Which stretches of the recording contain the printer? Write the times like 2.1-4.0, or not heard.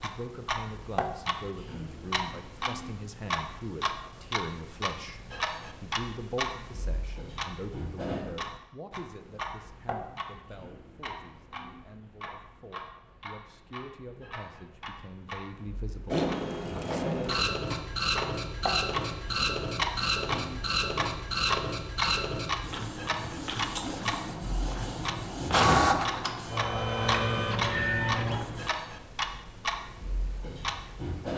16.1-28.7.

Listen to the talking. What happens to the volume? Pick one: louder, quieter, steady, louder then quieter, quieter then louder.
quieter then louder.